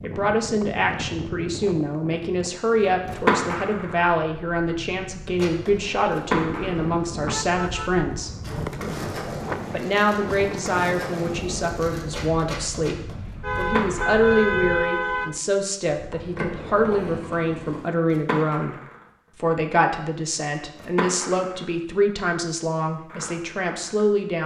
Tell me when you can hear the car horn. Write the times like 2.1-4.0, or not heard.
7.1-8.9, 13.4-15.4.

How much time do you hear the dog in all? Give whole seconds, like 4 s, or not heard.
not heard.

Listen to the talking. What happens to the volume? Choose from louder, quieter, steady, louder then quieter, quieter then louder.
steady.